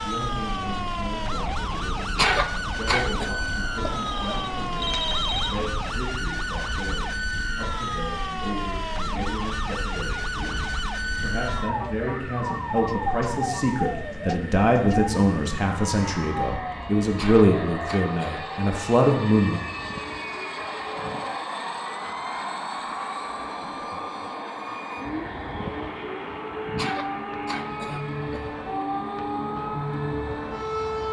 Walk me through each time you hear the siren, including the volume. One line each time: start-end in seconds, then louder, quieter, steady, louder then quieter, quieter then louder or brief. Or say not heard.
0.0-31.0 quieter then louder.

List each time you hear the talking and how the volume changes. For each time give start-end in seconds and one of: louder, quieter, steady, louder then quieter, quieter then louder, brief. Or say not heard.
0.0-19.6 louder.